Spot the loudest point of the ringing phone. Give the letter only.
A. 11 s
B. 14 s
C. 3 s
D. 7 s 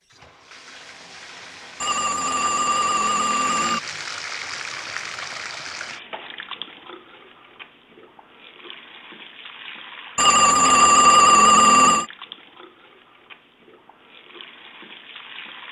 A.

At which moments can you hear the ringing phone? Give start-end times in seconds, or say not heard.
1.8-3.8, 10.2-12.1.